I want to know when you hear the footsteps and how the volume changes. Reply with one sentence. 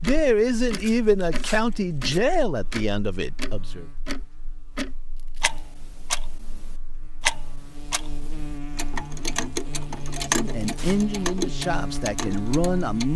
You can't hear the footsteps here.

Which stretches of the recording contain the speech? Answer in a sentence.
You can hear the speech from 0.0 to 3.9 s and from 10.2 to 13.1 s.